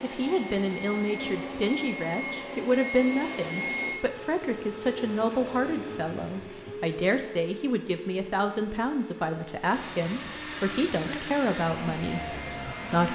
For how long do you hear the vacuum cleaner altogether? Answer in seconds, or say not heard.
13 s.